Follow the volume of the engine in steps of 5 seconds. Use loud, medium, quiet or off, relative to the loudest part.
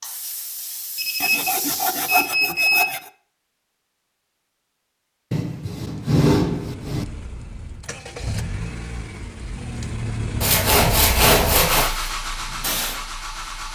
off, medium, loud.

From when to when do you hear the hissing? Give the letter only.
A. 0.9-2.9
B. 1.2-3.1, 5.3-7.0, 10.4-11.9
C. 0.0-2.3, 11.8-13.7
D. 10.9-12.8
C.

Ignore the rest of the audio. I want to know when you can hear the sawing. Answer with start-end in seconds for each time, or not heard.
1.2-3.1, 5.3-7.0, 10.4-11.9.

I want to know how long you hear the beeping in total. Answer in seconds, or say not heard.
2 s.